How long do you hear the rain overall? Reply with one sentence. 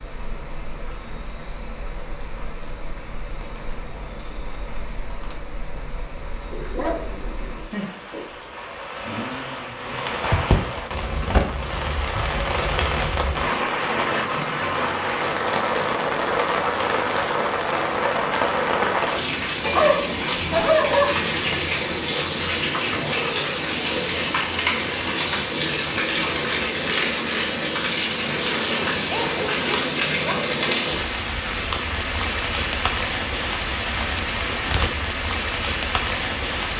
You can hear the rain for 37 seconds altogether.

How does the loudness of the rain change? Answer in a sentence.
The volume of the rain goes up.